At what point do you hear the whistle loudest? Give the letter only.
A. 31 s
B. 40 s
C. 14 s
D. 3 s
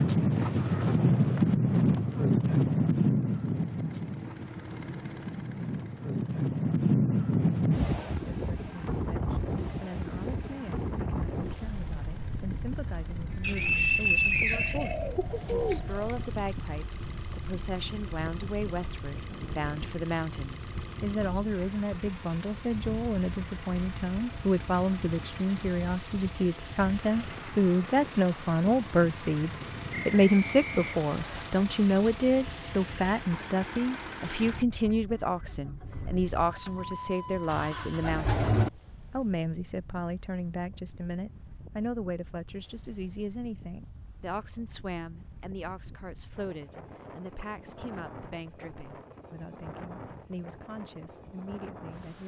C.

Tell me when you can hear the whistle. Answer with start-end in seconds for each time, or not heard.
13.4-14.9, 29.9-31.4.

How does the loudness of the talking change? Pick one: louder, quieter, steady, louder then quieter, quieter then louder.
louder then quieter.